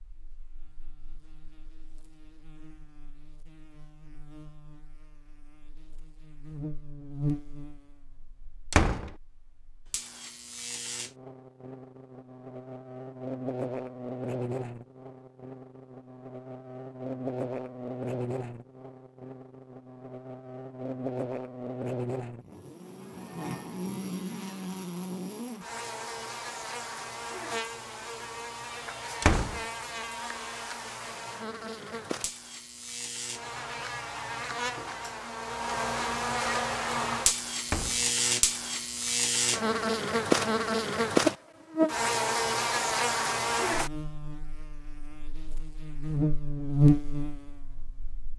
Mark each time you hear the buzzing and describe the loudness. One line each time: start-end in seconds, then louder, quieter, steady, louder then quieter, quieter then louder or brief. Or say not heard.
0.0-48.3 louder.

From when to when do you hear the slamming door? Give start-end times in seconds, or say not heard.
8.7-9.1, 29.2-29.6, 37.6-38.1.